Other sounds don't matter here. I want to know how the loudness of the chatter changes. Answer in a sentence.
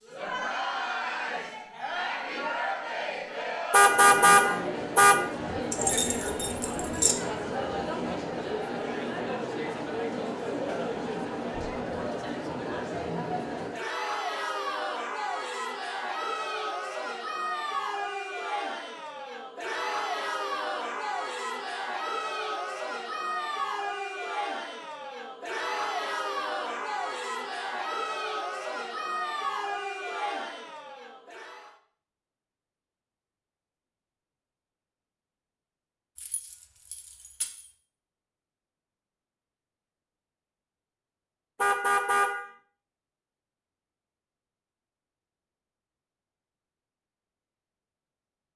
The loudness of the chatter stays about the same.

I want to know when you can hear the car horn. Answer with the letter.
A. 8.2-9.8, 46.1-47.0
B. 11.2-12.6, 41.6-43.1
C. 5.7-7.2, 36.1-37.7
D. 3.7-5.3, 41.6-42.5
D.